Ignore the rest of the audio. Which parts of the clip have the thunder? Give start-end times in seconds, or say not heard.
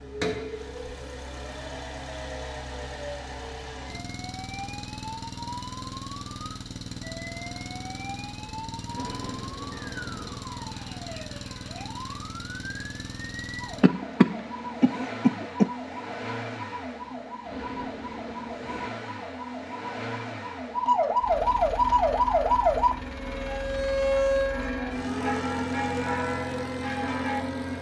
8.8-10.4, 17.4-18.9.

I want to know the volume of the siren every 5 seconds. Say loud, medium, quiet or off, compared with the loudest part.
quiet, quiet, quiet, quiet, loud, quiet.